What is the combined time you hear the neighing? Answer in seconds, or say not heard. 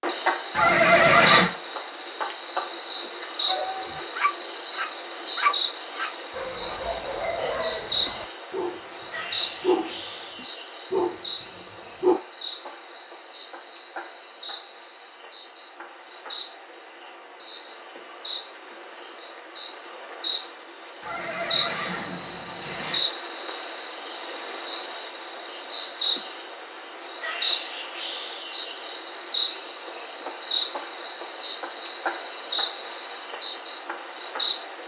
3 s.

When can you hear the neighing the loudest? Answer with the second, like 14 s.
1 s.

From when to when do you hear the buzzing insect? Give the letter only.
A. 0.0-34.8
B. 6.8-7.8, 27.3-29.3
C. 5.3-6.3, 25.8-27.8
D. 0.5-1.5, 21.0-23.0
A.